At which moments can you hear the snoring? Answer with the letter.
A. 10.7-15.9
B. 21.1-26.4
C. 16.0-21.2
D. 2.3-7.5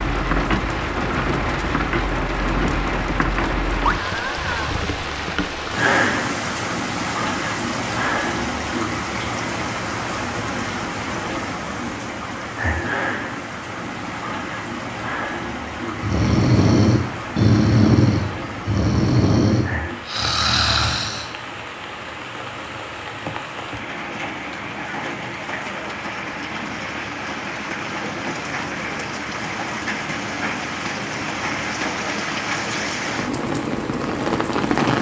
C.